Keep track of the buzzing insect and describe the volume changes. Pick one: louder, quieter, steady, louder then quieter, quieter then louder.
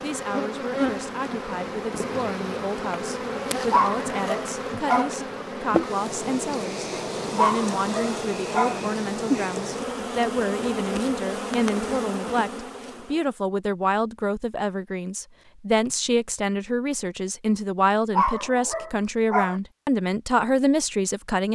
steady.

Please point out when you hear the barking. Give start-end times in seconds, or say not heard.
3.7-5.2, 7.3-8.8, 18.1-19.6.